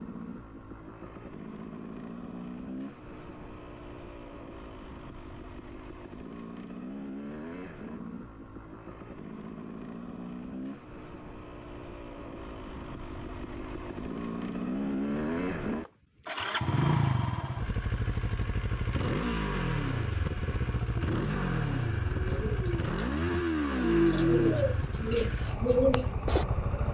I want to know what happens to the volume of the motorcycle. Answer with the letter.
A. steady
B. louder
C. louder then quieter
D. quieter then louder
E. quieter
B.